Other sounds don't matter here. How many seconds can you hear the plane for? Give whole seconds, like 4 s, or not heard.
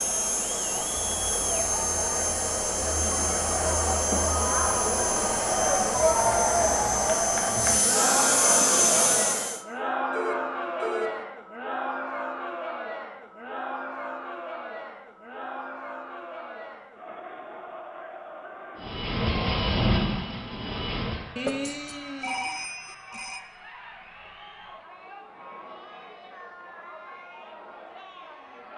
12 s.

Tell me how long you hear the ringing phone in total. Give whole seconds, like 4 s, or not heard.
3 s.